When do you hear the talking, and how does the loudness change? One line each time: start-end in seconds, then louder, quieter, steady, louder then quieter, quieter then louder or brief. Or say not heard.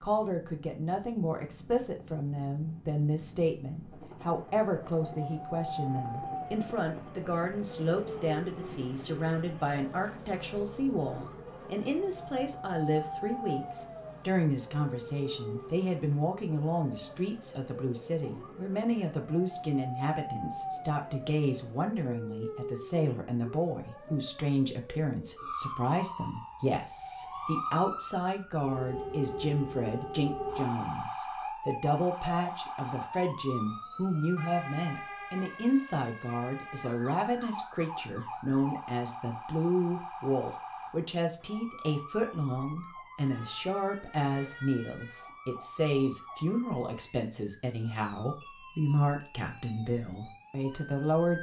0.0-51.3 steady.